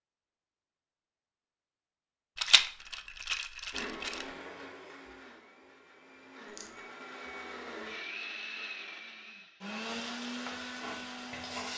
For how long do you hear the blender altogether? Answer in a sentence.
The blender can be heard for 8 seconds in total.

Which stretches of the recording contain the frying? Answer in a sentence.
You can hear the frying from 9.8 to 11.7 s.